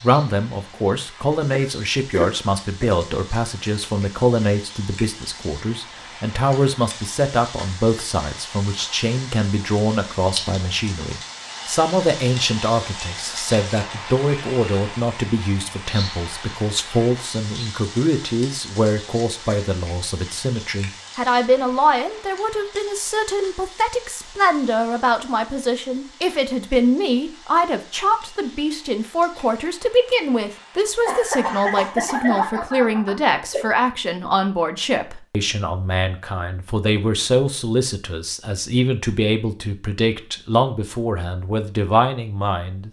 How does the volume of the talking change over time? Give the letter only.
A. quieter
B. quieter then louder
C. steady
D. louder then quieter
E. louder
C.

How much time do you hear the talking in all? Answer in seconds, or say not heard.
43 s.